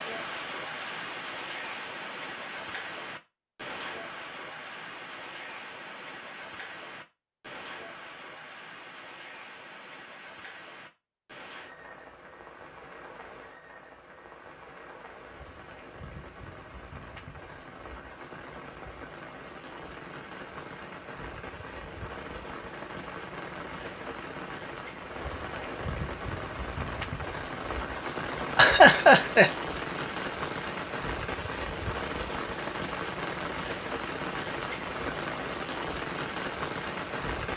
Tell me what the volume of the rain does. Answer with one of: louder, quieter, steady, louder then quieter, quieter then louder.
quieter then louder.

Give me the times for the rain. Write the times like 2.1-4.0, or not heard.
0.0-37.5.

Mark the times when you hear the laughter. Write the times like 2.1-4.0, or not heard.
28.6-29.5.